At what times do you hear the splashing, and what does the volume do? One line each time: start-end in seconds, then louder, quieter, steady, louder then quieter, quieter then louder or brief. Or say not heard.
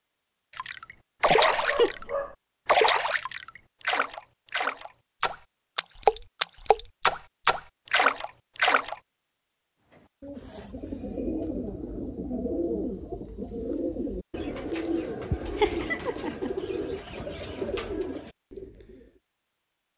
0.6-8.9 quieter then louder.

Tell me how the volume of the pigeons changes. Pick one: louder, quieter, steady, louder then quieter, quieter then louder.
steady.